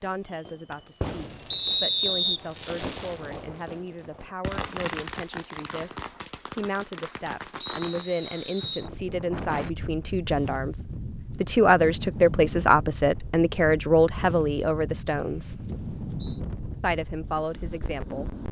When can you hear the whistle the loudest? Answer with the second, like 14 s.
2 s.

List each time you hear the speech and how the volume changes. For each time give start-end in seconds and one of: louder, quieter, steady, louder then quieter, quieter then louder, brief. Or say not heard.
0.0-15.7 louder
16.8-18.3 brief.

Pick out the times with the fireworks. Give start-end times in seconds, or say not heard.
0.0-8.1.